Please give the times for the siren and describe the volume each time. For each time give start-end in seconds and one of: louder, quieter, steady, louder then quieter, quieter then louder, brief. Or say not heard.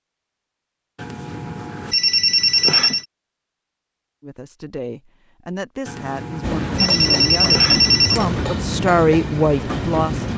not heard.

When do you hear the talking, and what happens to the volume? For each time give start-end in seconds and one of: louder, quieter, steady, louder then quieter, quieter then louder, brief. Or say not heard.
4.2-10.3 louder.